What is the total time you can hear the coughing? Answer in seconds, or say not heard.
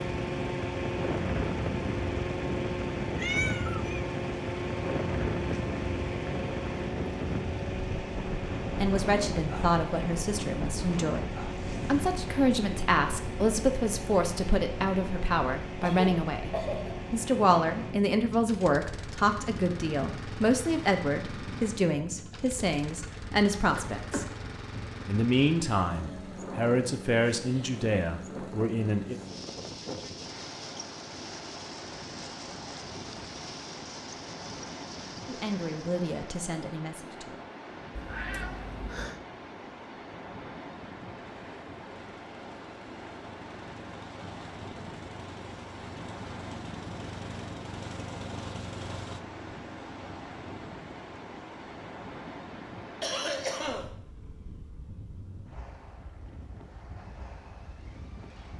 3 s.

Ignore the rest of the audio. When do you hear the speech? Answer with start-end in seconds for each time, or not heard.
8.8-16.5, 17.1-24.2, 25.1-29.2, 35.2-37.4.